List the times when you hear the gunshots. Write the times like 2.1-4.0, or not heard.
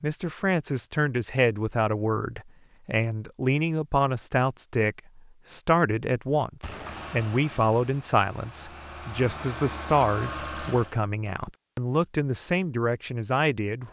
6.6-7.0.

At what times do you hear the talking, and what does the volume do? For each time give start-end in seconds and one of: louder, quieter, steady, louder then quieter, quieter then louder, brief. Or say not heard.
0.0-13.8 steady.